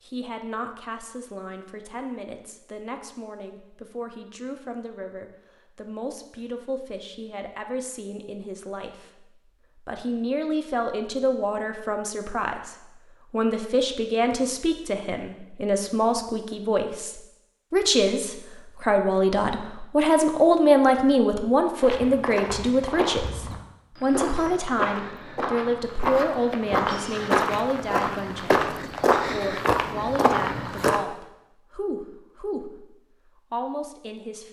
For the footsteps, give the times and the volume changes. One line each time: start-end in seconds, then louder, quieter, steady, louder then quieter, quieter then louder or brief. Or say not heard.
21.8-31.0 louder.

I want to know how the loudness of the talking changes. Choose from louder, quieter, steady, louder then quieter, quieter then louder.
louder then quieter.